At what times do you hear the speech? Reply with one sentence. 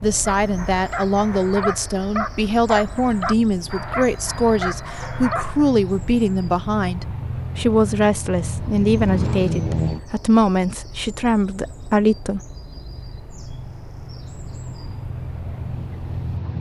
The speech can be heard from 0.0 to 12.4 s.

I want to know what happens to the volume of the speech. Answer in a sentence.
The volume of the speech stays about the same.